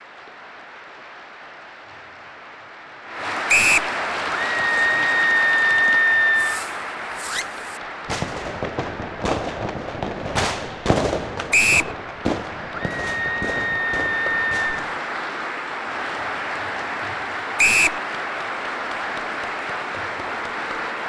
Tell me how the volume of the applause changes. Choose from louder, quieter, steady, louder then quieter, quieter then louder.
quieter then louder.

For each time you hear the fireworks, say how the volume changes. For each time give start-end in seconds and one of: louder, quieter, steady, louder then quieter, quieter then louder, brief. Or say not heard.
4.1-15.0 louder then quieter.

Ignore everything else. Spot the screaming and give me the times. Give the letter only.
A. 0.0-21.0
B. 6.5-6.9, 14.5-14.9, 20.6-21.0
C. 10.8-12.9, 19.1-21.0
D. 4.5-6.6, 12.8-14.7
D.